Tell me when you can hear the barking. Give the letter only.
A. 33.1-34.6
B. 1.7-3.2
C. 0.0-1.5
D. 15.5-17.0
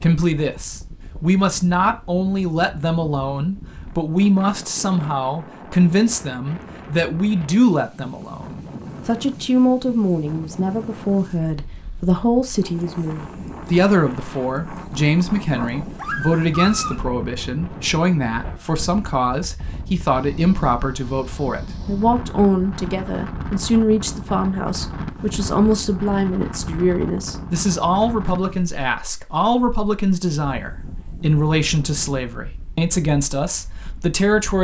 D.